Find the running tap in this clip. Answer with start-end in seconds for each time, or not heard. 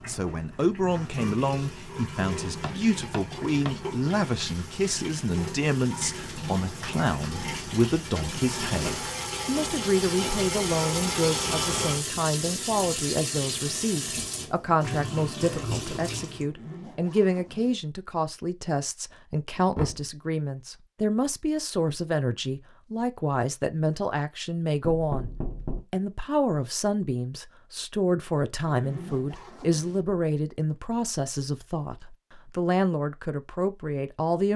0.0-16.4.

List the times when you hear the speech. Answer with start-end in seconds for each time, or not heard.
0.1-25.3, 25.9-34.5.